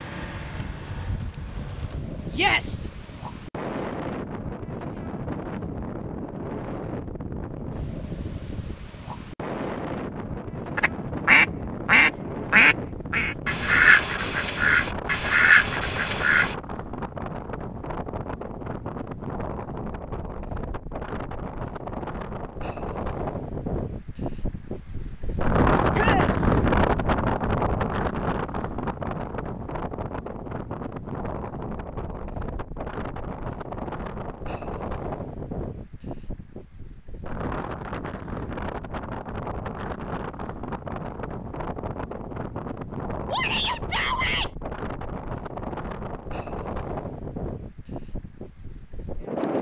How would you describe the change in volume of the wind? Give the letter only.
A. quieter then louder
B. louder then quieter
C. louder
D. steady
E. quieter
B.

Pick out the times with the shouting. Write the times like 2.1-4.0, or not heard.
2.3-2.8, 25.9-26.3, 43.3-44.5.